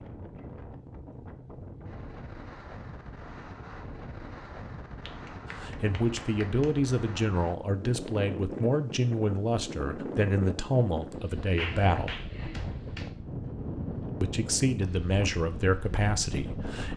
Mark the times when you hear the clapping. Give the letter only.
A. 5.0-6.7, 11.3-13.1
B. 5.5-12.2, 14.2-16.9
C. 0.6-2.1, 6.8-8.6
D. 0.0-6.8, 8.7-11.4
A.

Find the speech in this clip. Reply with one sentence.
You can hear the speech from 5.5 to 12.2 s and from 14.2 to 16.9 s.